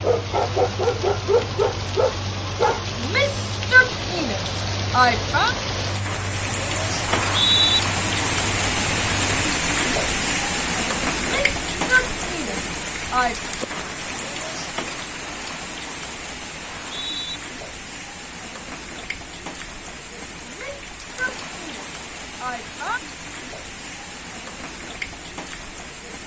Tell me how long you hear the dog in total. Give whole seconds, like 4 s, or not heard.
3 s.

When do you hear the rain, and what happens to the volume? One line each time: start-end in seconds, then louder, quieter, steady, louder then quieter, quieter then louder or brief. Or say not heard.
0.0-26.2 louder then quieter.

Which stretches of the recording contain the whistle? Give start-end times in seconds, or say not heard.
7.0-7.8, 16.6-17.4.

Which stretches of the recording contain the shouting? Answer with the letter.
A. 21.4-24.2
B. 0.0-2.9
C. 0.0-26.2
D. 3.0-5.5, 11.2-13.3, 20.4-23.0
D.